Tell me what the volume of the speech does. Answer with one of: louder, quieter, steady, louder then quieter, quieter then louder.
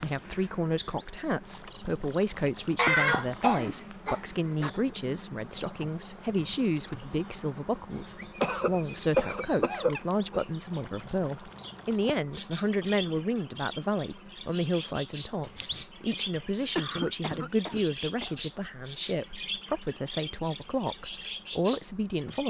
steady.